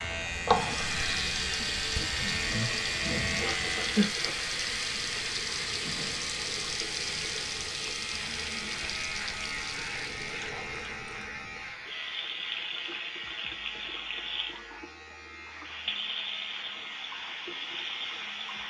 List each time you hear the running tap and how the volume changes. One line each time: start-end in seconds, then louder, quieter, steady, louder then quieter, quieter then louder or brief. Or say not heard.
0.0-18.6 quieter.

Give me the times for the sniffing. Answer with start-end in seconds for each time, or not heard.
3.4-4.5.